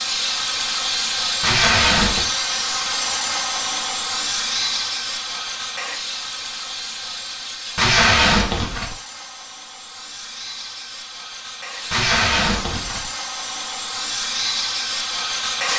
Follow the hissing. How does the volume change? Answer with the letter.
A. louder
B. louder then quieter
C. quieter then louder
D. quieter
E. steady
C.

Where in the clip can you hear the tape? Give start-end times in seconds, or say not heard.
1.4-2.3, 7.8-8.9, 11.9-13.1.